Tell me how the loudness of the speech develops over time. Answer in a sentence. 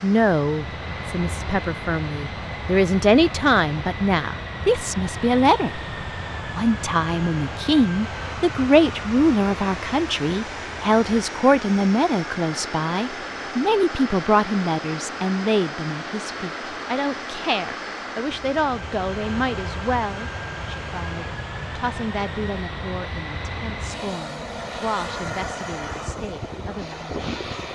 The volume of the speech goes down.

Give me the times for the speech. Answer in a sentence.
The speech can be heard from 0.0 to 5.8 s and from 6.5 to 27.3 s.